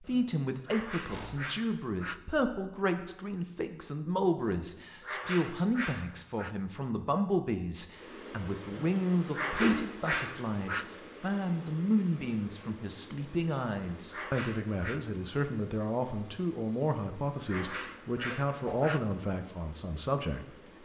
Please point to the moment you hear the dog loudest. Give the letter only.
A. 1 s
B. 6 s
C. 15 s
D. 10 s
D.